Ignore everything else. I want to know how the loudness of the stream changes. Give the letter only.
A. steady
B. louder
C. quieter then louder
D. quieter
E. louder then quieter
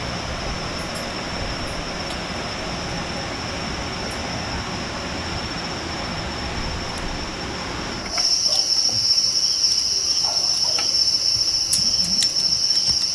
D.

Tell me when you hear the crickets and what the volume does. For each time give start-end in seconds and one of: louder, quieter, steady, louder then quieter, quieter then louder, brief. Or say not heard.
0.0-13.1 louder.